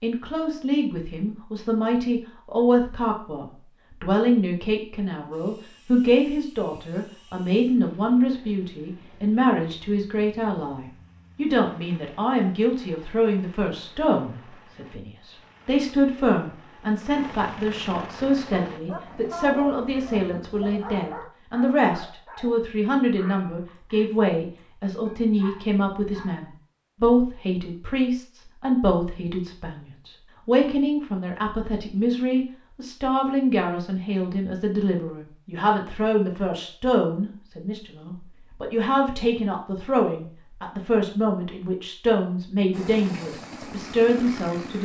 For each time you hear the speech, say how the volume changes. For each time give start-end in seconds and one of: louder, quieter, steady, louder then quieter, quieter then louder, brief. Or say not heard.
0.0-44.8 steady.